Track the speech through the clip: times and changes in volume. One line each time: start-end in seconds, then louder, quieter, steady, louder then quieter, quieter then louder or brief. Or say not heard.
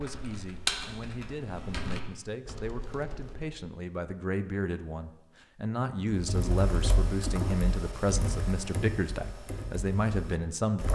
0.0-10.9 louder.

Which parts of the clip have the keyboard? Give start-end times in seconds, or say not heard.
0.0-3.6, 6.1-10.9.